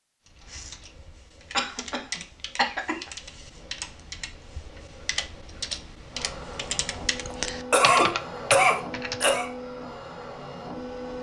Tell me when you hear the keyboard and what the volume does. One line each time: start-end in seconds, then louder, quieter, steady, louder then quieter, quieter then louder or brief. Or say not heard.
0.2-9.4 louder.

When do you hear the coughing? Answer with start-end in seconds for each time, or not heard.
1.5-3.0, 7.3-9.5.